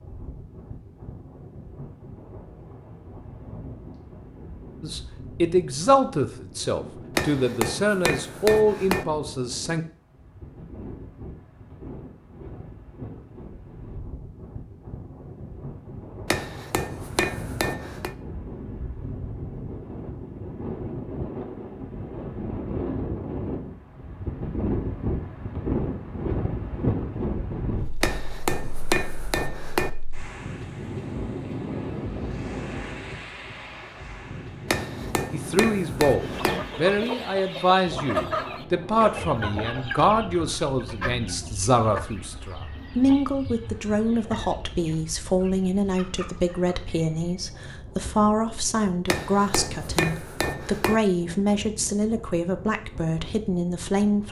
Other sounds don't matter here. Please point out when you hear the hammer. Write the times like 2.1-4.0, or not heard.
7.2-9.1, 16.2-18.1, 28.0-29.9, 34.6-36.6, 49.0-51.0.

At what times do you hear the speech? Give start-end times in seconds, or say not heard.
4.8-9.8, 35.3-54.2.